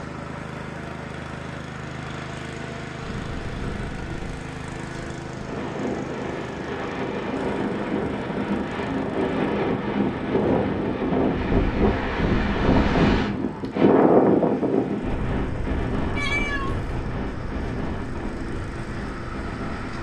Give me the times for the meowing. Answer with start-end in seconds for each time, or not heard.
16.1-16.9.